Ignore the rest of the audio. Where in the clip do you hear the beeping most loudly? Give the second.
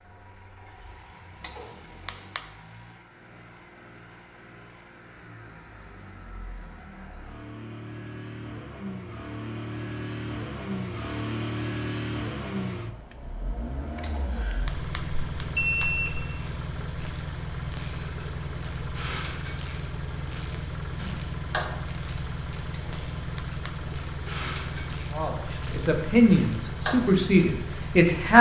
16 s.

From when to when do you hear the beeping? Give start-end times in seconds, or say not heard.
1.4-2.4, 14.0-16.2, 22.7-23.7.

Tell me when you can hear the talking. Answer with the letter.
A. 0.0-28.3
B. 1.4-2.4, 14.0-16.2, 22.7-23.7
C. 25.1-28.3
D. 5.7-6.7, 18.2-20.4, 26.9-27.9
C.